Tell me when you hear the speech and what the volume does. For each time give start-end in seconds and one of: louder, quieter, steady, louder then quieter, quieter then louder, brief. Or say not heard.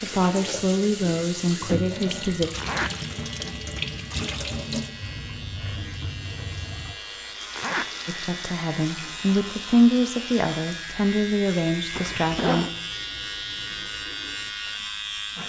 0.0-2.5 brief
8.1-12.7 louder then quieter.